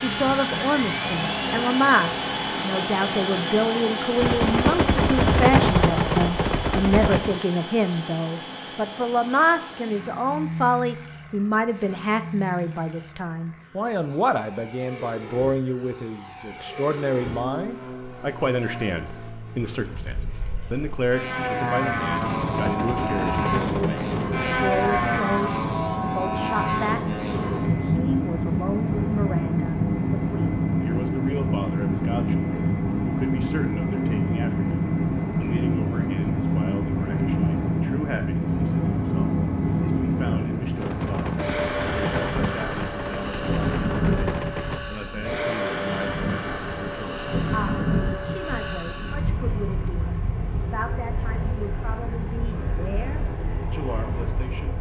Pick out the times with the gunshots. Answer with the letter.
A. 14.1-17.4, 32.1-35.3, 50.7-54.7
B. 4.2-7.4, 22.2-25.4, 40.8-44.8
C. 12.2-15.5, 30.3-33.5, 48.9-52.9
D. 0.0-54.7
B.